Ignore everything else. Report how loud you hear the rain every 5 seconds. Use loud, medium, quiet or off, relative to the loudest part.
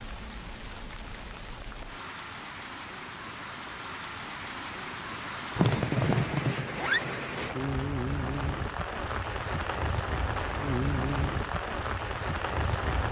medium, loud, loud.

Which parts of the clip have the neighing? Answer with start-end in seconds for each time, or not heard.
5.5-7.0.